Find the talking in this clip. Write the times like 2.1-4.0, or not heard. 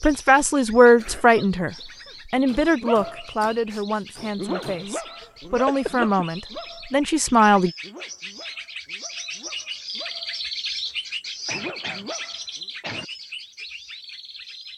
0.0-7.7.